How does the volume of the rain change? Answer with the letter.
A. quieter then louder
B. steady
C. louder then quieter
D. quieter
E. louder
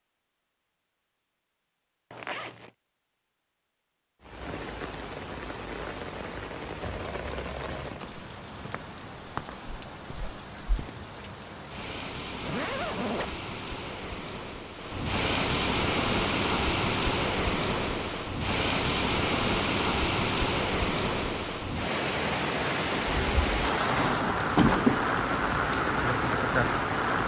E.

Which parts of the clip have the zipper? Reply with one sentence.
The zipper can be heard from 2.1 to 2.7 s, from 12.4 to 13.3 s and from 23.9 to 25.1 s.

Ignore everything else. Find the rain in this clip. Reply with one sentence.
The rain can be heard from 4.2 to 27.2 s.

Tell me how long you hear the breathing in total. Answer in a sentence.
The breathing can't be heard in this clip.